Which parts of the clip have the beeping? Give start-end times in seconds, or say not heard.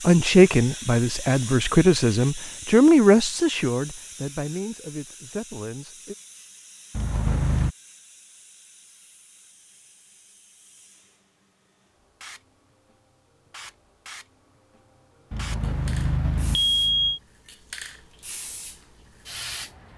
6.9-7.8, 15.3-17.2.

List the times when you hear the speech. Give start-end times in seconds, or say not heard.
0.0-6.2.